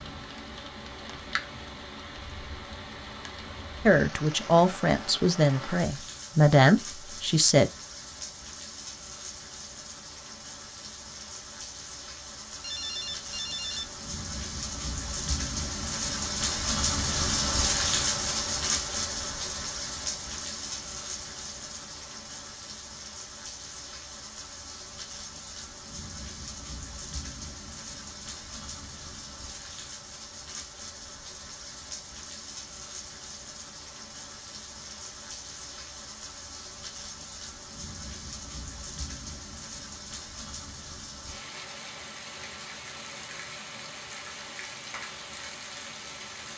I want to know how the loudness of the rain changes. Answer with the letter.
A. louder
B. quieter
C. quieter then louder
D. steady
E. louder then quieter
E.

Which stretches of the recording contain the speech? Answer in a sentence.
The speech can be heard from 3.9 to 7.7 s.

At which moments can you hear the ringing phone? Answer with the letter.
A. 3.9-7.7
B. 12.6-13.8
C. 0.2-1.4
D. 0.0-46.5
B.